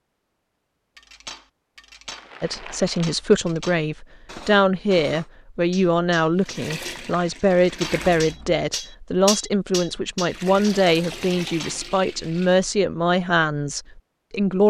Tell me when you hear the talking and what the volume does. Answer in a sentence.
The talking can be heard from 2.4 to 14.6 s, at a steady volume.